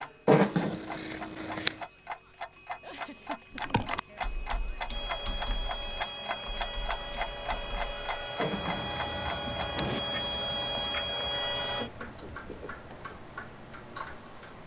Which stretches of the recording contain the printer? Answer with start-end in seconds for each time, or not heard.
4.8-11.9.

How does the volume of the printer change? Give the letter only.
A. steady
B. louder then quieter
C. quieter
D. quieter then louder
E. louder
E.